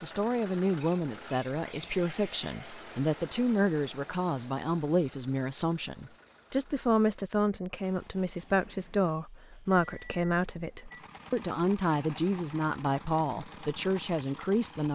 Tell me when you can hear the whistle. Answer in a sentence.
You can't hear the whistle here.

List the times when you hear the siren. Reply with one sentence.
The siren can't be heard in this clip.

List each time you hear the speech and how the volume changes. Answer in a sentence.
The speech can be heard from 0.0 to 14.9 s, at a steady volume.